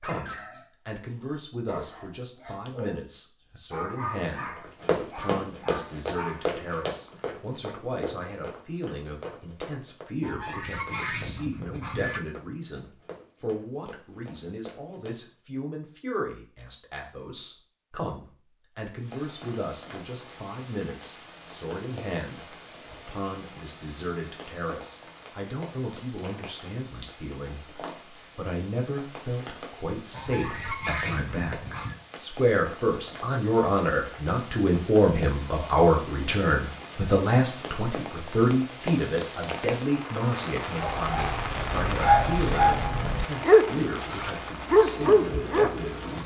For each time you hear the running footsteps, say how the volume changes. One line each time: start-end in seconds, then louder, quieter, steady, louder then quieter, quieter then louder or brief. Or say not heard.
4.5-15.2 quieter.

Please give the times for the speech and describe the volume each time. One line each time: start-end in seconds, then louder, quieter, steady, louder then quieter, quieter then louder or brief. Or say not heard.
0.0-46.2 louder.